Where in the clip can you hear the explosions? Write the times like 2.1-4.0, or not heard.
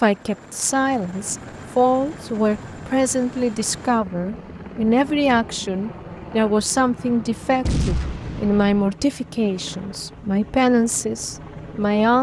7.7-8.8.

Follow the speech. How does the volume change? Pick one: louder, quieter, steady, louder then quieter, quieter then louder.
steady.